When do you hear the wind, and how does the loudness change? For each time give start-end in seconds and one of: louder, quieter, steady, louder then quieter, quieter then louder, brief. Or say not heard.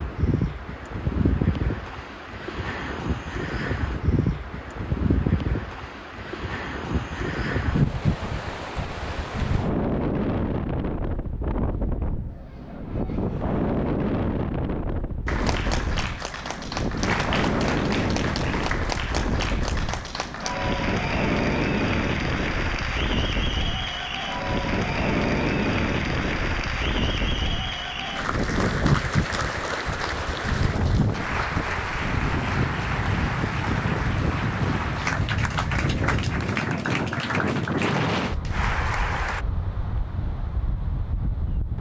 0.0-41.7 steady.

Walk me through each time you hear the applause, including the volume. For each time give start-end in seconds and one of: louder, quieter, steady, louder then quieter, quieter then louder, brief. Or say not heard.
15.2-39.5 steady.